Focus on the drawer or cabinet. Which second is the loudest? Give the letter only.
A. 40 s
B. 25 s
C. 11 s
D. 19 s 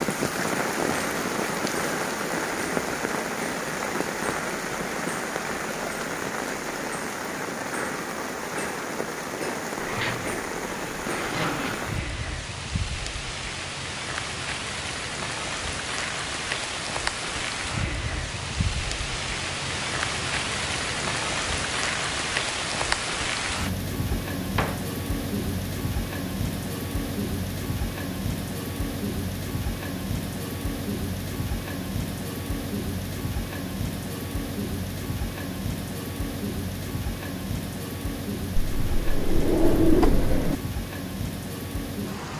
A.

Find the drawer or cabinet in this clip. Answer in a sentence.
The drawer or cabinet can be heard from 9.8 to 12.0 s, from 24.1 to 24.8 s and from 38.8 to 40.5 s.